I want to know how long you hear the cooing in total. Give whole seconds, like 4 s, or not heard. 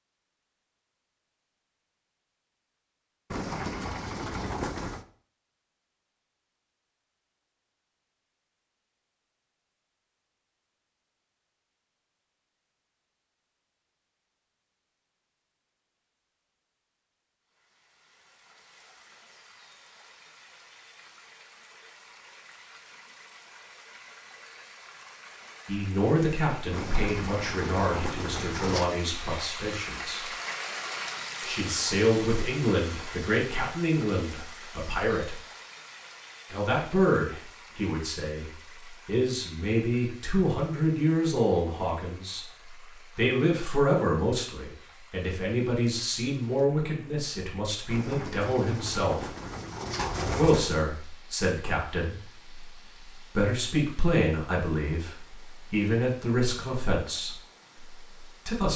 7 s.